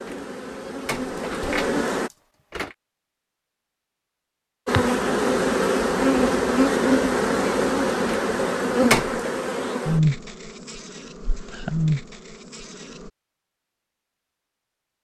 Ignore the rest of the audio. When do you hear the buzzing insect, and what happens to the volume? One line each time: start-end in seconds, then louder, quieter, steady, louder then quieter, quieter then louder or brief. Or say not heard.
0.0-2.1 brief
4.7-13.1 quieter.